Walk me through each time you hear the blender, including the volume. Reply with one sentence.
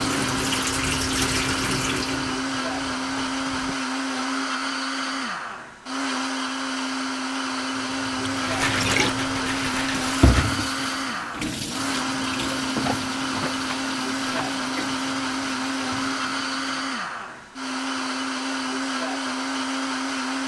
The blender can be heard from 0.0 to 20.4 s, at a steady volume.